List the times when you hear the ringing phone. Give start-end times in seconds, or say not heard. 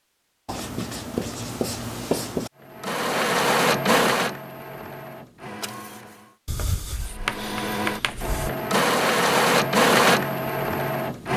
not heard.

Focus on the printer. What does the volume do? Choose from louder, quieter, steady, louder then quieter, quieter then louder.
quieter then louder.